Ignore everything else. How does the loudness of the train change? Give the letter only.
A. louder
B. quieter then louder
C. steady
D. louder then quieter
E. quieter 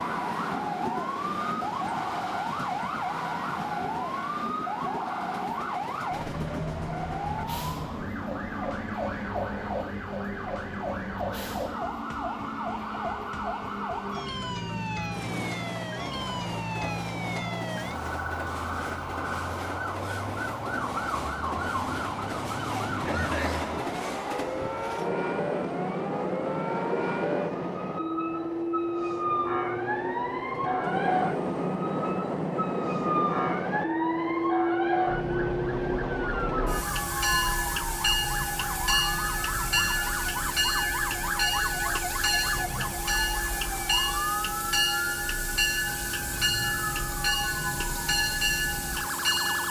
A.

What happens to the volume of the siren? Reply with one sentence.
The loudness of the siren stays about the same.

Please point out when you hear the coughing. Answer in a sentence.
You can hear the coughing from 23.1 to 23.9 s.